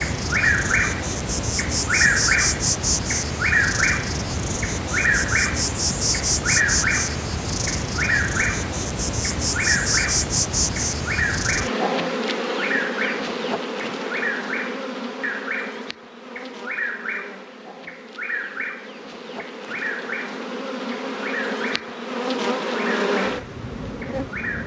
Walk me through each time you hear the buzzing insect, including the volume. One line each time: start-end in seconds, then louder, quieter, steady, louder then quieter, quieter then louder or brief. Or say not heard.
0.0-24.6 quieter then louder.